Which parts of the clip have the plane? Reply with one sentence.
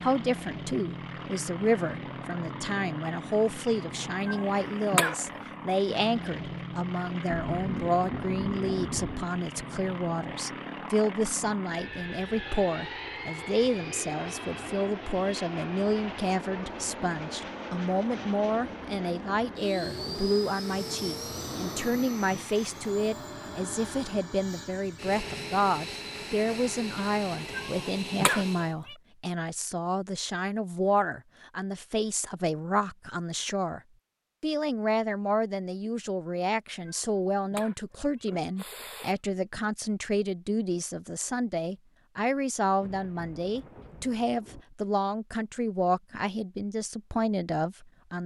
You can hear the plane from 0.0 to 28.8 s.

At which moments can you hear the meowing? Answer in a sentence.
The meowing can be heard from 4.2 to 5.4 s, from 27.5 to 28.9 s and from 36.8 to 39.1 s.